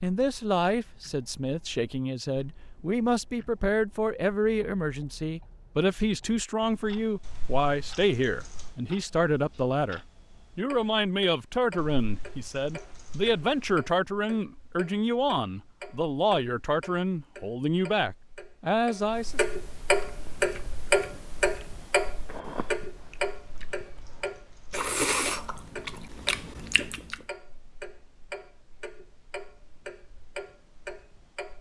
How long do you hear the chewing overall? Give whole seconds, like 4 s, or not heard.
7 s.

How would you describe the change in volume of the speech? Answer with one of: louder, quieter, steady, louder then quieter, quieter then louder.
steady.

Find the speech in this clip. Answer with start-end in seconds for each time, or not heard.
0.0-19.4.